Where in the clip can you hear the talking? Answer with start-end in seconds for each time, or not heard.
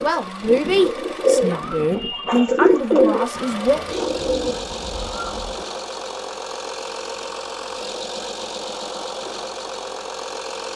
0.0-3.8.